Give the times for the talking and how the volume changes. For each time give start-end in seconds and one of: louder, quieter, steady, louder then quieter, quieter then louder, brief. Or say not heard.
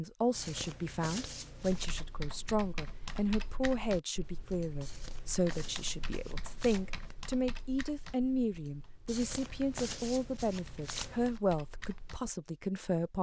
0.0-13.1 steady.